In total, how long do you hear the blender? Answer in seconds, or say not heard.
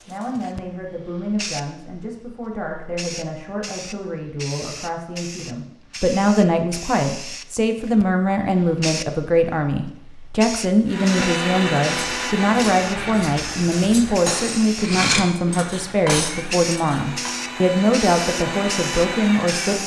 9 s.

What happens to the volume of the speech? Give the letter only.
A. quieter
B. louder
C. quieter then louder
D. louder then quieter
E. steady
B.